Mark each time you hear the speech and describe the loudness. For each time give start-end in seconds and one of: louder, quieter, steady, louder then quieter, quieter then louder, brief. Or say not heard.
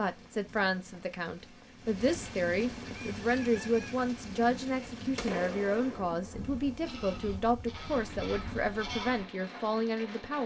0.0-10.4 steady.